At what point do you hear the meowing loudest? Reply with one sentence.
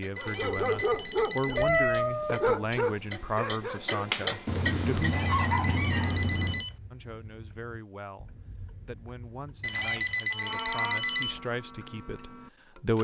The loudest moment of the meowing is at 2 seconds.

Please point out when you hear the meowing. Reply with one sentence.
The meowing can be heard from 1.6 to 2.6 s, from 4.5 to 6.7 s and from 10.3 to 11.0 s.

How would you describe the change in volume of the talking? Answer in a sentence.
The volume of the talking goes down, then up.